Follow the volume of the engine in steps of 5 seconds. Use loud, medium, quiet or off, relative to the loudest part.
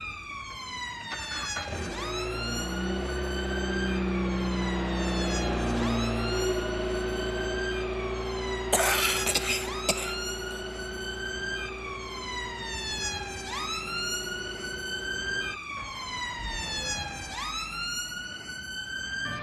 loud, loud, medium, quiet.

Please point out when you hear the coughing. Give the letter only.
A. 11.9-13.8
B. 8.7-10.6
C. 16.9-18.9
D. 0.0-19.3
B.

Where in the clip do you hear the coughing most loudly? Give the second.
9 s.